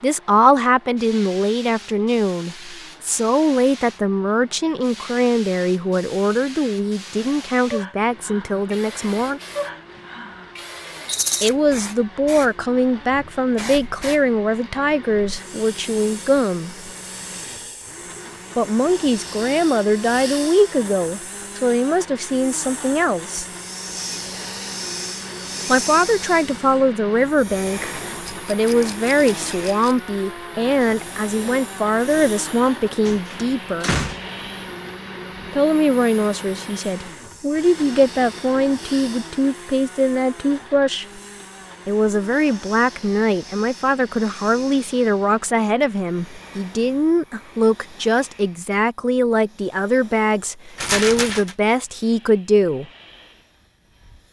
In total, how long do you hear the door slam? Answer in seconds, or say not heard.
2 s.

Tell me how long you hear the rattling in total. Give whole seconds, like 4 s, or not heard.
3 s.